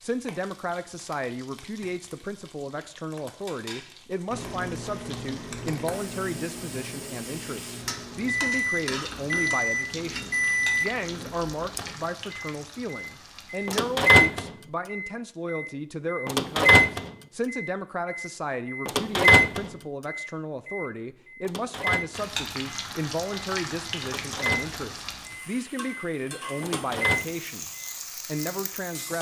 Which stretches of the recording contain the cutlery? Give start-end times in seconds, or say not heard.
not heard.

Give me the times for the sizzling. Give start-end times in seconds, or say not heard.
0.0-13.9, 22.1-29.1.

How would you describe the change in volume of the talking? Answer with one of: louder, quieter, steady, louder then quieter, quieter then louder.
steady.